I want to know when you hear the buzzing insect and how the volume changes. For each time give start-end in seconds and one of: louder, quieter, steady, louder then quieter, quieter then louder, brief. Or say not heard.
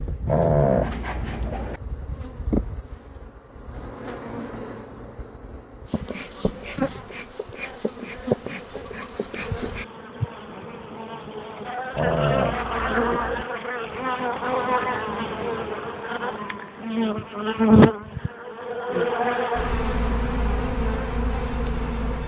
0.0-22.2 louder.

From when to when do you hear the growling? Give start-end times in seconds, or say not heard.
0.2-1.8, 11.9-13.4.